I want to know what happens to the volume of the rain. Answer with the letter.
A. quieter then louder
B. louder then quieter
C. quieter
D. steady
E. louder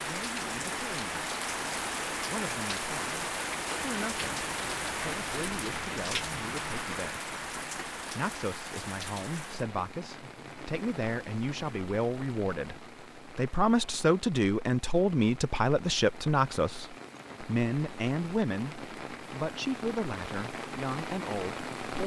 A.